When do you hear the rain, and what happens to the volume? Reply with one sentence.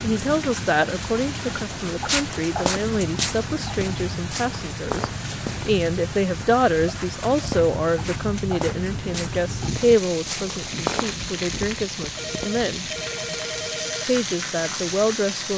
The rain can be heard from 0.0 to 15.5 s, at a steady volume.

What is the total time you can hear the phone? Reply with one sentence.
The phone can be heard for 2 seconds in total.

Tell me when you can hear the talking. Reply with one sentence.
You can hear the talking from 0.0 to 12.8 s and from 14.1 to 15.5 s.